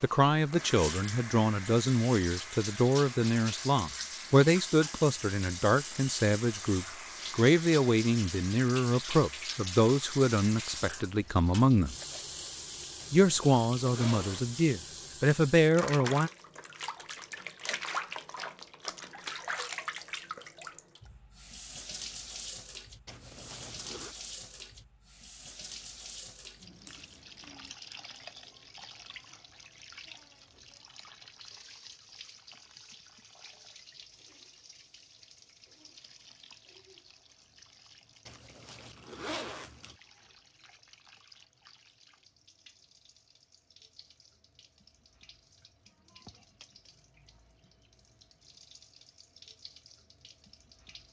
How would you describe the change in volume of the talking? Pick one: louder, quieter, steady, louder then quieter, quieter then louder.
steady.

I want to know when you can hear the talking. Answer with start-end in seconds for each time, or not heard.
0.0-11.9, 13.1-16.3.